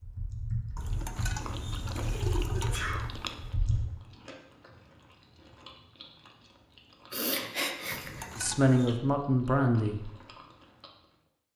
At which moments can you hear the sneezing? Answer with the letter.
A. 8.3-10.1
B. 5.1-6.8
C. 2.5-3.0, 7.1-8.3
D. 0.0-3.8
C.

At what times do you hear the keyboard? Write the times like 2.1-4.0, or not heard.
0.0-3.8.